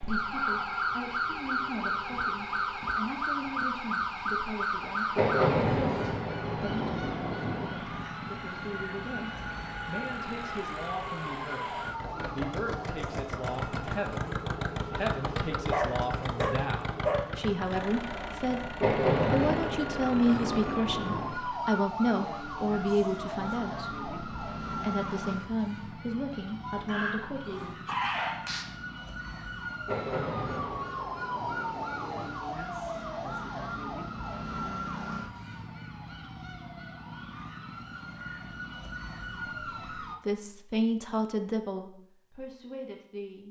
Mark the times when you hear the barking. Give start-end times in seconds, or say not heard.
15.7-17.2, 26.6-28.6.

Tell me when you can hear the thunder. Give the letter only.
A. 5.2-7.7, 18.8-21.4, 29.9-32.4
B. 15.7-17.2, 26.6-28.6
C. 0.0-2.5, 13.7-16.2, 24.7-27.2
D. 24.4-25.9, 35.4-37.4
A.